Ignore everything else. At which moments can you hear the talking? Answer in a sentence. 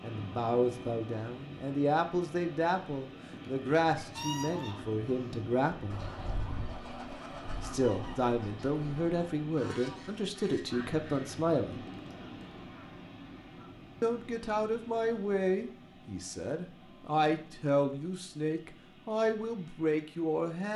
You can hear the talking from 0.0 to 6.0 s, from 7.6 to 11.8 s and from 14.0 to 20.7 s.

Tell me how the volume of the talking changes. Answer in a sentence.
The loudness of the talking stays about the same.